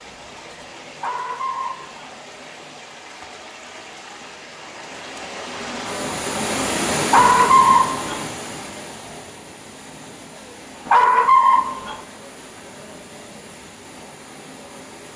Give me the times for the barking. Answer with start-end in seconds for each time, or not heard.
0.9-2.1, 7.0-8.2, 10.8-12.0.